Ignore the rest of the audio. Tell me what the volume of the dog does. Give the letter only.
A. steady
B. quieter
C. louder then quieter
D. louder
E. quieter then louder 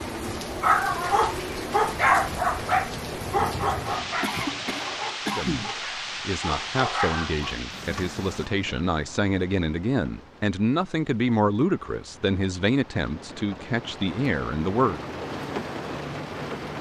E.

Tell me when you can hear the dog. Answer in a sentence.
You can hear the dog from 0.4 to 8.1 s.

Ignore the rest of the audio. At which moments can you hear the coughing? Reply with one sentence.
You can hear the coughing from 4.2 to 5.8 s.